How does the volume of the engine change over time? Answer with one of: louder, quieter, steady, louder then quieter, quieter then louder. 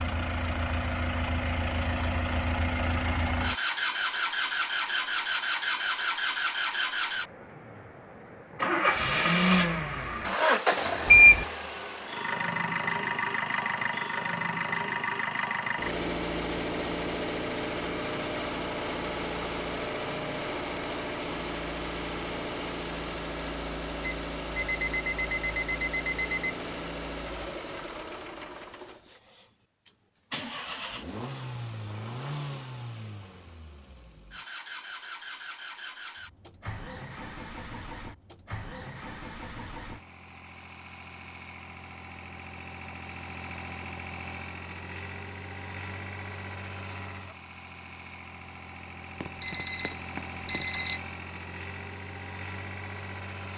quieter.